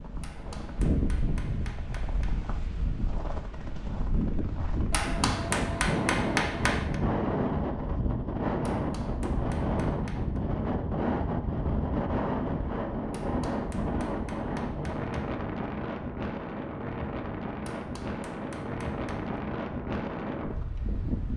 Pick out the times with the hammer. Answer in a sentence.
The hammer can be heard from 0.2 to 2.4 s, from 4.9 to 7.0 s, from 8.6 to 10.4 s, from 13.1 to 15.3 s and from 17.6 to 19.4 s.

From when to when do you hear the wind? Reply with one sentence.
You can hear the wind from 0.0 to 21.3 s.